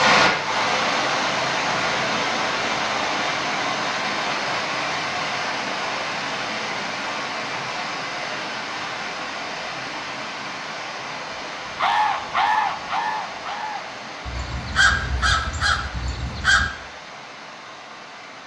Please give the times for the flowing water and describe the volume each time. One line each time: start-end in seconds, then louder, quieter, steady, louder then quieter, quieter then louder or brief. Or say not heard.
0.0-18.4 quieter.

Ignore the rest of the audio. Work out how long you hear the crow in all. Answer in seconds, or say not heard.
5 s.